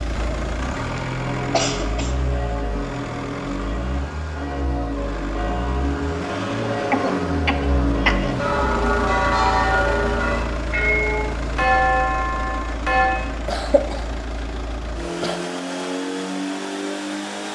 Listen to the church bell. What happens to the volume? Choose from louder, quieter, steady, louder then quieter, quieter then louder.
louder.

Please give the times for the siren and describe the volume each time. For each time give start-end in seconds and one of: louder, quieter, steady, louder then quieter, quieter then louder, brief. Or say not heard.
not heard.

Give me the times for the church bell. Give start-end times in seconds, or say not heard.
1.1-13.2.